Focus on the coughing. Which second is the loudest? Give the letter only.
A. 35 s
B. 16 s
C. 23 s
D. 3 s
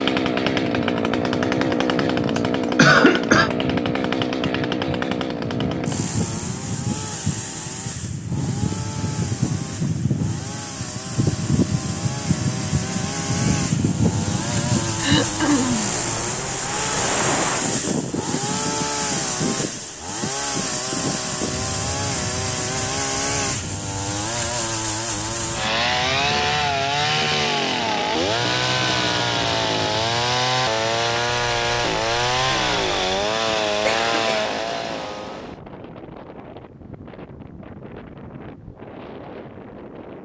D.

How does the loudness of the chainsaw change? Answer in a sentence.
The volume of the chainsaw goes down, then up.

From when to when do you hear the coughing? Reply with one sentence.
You can hear the coughing from 2.4 to 3.5 s, from 15.0 to 15.9 s and from 33.9 to 34.5 s.